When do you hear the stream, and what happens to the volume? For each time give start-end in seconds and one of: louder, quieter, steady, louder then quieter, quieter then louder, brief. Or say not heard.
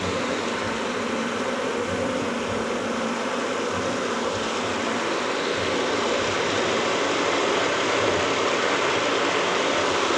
0.0-10.1 louder.